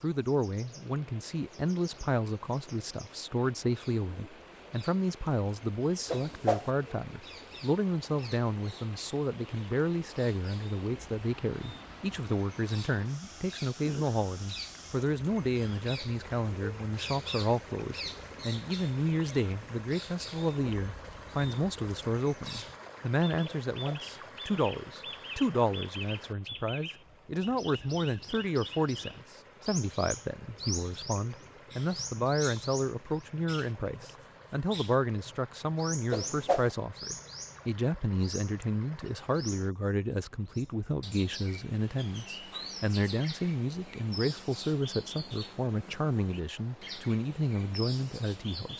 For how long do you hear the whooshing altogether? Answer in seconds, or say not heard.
2 s.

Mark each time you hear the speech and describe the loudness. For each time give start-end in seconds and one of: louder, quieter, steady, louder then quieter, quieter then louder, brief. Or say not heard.
0.0-48.7 steady.